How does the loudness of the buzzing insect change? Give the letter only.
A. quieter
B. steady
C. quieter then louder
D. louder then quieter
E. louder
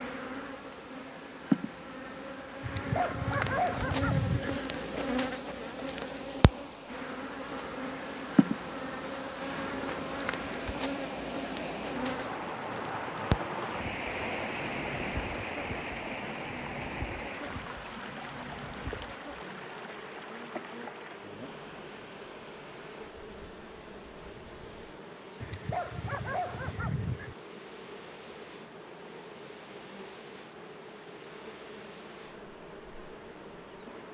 A.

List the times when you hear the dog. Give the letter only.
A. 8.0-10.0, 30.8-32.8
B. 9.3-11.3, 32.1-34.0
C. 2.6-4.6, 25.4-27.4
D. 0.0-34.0
C.